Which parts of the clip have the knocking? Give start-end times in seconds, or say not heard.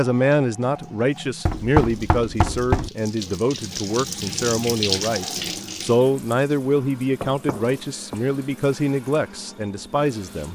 1.4-2.9, 7.2-8.2.